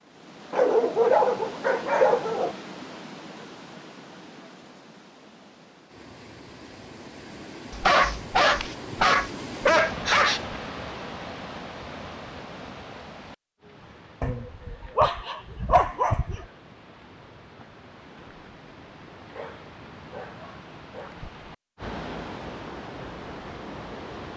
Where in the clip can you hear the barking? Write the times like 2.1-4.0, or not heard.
0.5-2.5, 7.7-10.6, 14.2-16.4, 19.3-21.1.